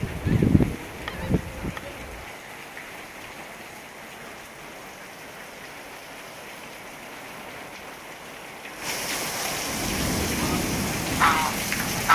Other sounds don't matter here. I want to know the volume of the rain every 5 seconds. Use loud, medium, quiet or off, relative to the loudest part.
quiet, medium, loud.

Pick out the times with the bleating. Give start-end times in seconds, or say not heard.
not heard.